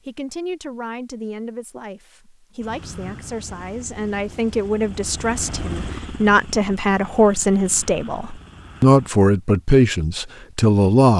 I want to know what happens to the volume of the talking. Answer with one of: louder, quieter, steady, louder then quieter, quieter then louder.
louder.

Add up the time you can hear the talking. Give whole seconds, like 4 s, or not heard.
11 s.